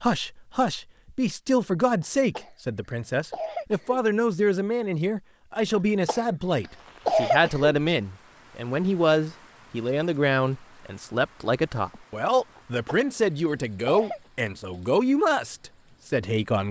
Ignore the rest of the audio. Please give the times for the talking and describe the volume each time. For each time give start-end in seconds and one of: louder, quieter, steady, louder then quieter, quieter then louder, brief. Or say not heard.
0.0-16.6 steady.